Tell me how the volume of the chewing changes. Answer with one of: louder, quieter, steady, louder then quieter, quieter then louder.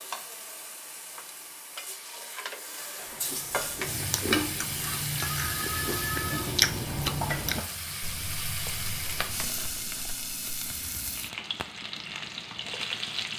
louder then quieter.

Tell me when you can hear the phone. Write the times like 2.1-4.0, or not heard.
5.3-6.5.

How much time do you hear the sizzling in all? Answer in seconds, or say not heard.
13 s.